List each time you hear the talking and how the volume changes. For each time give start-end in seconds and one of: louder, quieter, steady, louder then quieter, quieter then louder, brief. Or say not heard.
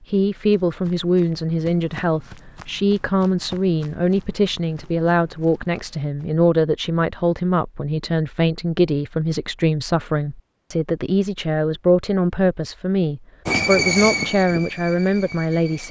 0.1-15.8 steady.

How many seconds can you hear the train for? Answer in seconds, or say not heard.
2 s.